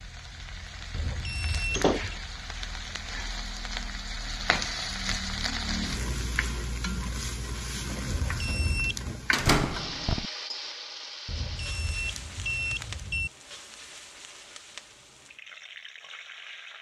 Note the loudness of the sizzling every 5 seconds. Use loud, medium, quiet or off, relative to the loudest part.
loud, loud, medium, medium.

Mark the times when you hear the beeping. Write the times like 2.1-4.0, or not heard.
0.9-2.1, 8.1-9.2, 11.2-13.3.